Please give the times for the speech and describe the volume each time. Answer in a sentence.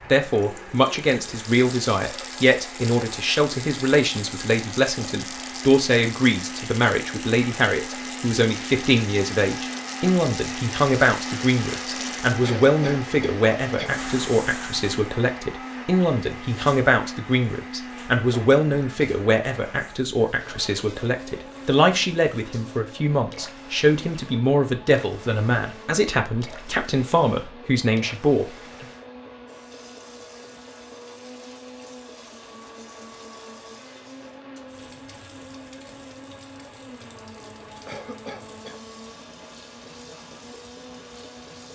You can hear the speech from 0.1 to 28.9 s, at a steady volume.